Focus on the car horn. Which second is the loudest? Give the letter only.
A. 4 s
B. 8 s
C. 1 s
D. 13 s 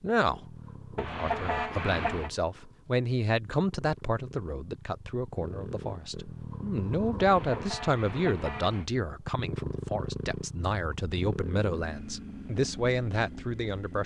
C.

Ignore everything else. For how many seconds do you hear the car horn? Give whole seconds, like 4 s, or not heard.
3 s.